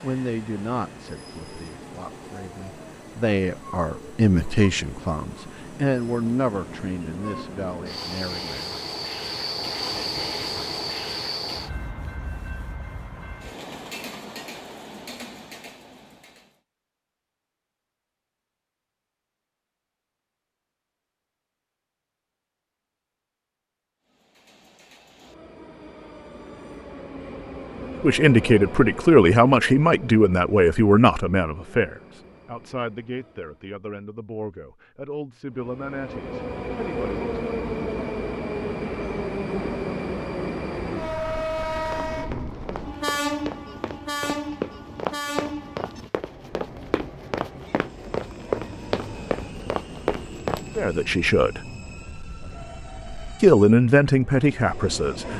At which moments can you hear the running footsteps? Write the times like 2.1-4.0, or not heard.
41.8-50.8.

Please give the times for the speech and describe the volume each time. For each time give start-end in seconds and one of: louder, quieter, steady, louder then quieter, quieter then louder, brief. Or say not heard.
0.0-8.8 louder then quieter
28.0-37.4 quieter
50.8-51.6 brief
53.4-55.3 brief.